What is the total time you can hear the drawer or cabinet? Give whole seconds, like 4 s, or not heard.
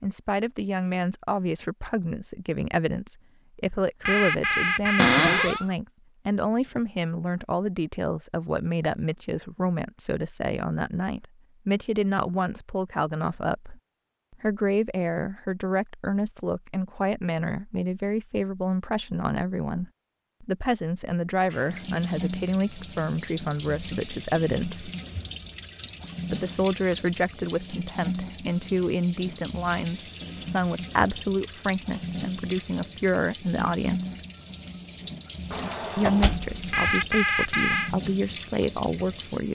2 s.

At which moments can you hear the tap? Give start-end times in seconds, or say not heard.
21.5-39.5.